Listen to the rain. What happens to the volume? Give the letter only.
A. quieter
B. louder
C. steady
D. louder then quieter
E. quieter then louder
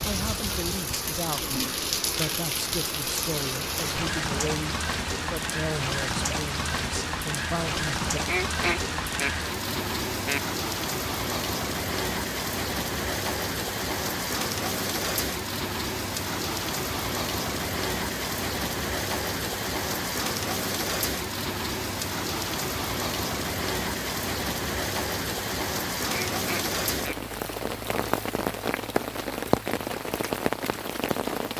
C.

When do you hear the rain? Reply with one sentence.
The rain can be heard from 0.0 to 31.5 s.